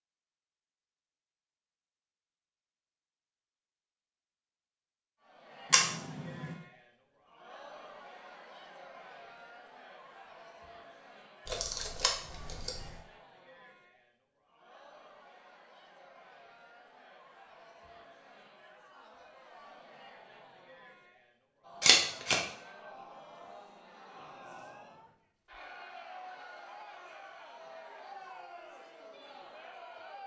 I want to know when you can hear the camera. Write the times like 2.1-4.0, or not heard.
5.7-6.5, 11.4-13.0, 21.8-22.4.